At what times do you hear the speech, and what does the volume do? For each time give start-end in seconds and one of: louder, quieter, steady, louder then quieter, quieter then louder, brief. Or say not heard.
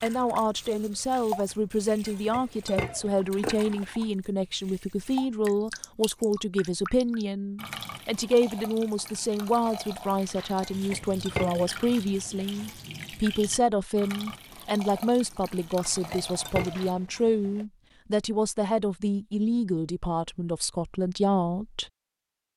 0.0-21.9 steady.